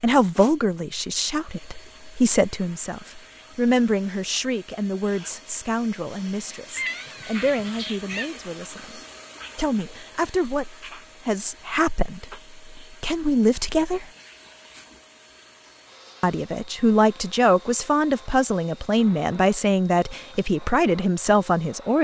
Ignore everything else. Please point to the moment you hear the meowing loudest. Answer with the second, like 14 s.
7 s.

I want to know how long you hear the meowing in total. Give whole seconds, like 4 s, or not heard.
2 s.